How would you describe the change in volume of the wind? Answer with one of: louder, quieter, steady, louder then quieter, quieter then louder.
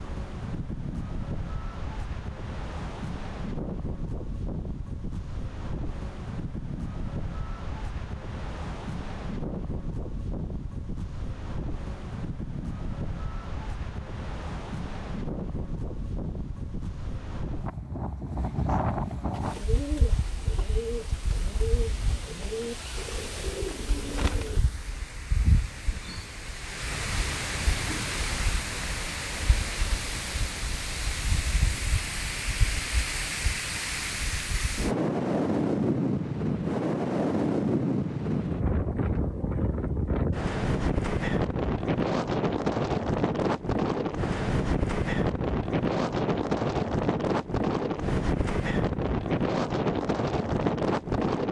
louder.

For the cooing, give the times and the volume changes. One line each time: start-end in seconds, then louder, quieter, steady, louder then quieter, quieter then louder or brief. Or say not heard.
19.3-24.6 steady.